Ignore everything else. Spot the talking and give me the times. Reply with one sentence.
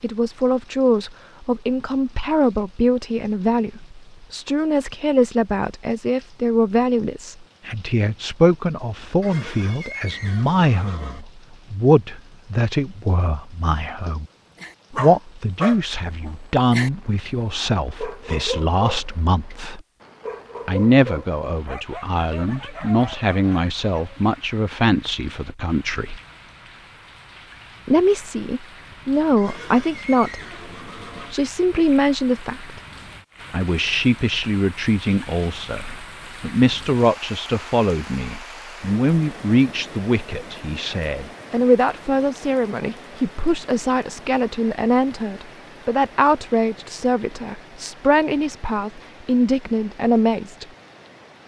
You can hear the talking from 0.0 to 14.2 s, from 14.9 to 19.8 s, from 20.6 to 26.2 s, from 27.9 to 30.4 s, from 31.3 to 32.8 s and from 33.5 to 50.6 s.